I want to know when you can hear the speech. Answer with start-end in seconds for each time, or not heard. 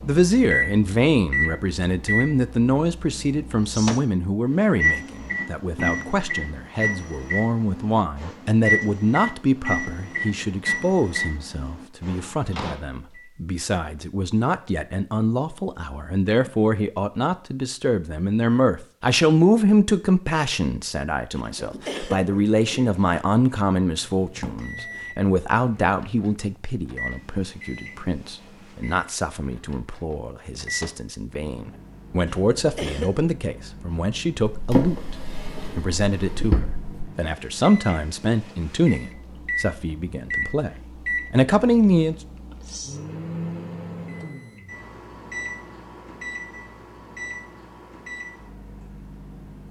0.0-35.1, 35.8-40.7, 41.3-42.1.